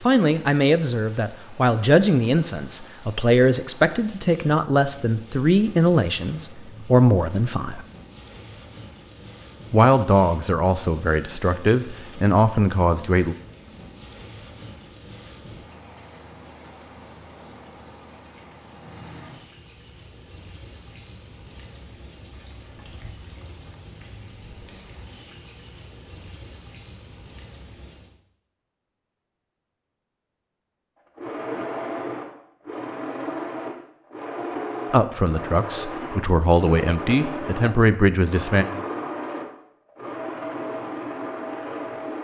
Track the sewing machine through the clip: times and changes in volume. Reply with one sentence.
You can hear the sewing machine from 31.1 to 42.1 s, at a steady volume.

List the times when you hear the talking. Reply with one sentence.
You can hear the talking from 0.0 to 7.8 s, from 9.7 to 13.3 s and from 34.9 to 38.6 s.